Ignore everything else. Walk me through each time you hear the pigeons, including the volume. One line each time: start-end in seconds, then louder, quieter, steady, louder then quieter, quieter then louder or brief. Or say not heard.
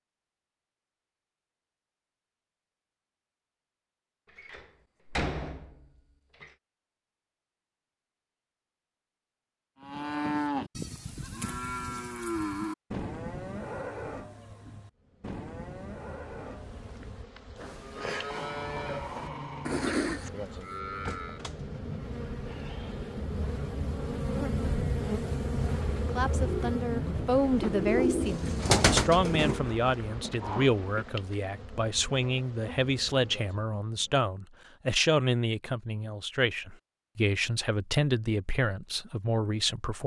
25.6-31.1 louder then quieter.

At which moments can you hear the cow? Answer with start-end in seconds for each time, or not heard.
9.8-21.4.